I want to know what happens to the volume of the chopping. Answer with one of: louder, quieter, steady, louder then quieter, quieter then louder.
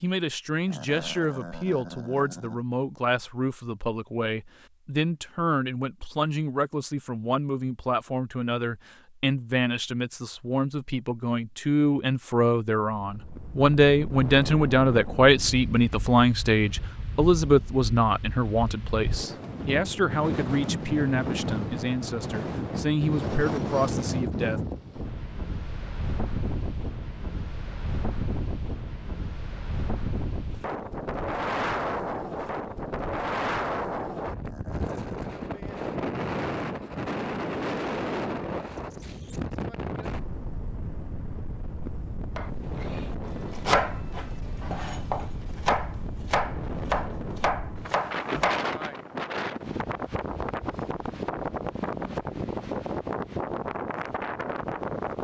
quieter then louder.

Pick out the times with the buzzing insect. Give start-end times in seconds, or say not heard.
not heard.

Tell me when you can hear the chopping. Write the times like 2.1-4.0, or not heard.
42.4-48.7.